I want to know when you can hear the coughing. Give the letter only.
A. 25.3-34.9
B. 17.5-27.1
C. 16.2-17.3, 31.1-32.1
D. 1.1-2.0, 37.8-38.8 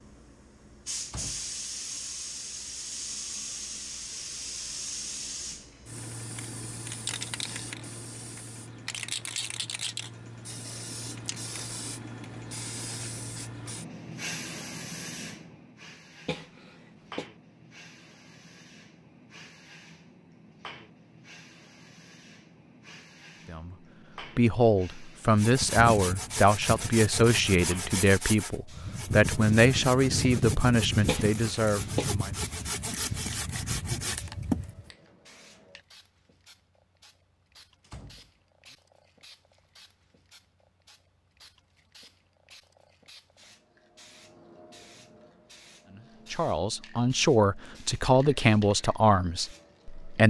C.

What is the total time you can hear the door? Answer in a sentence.
You can hear the door for 2 seconds altogether.